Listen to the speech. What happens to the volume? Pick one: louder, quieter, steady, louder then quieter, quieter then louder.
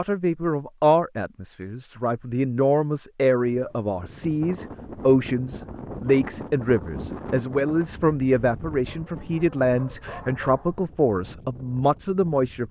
steady.